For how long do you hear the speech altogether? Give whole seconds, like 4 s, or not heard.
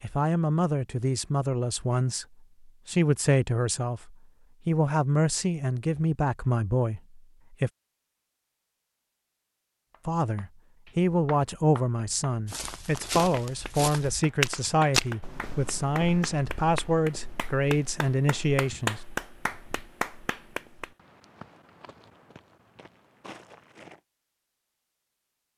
17 s.